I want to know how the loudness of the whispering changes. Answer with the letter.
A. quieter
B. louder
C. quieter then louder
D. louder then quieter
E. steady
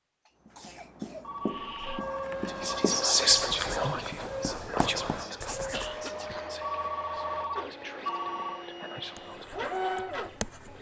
A.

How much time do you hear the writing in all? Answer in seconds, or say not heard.
7 s.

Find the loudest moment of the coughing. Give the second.
6 s.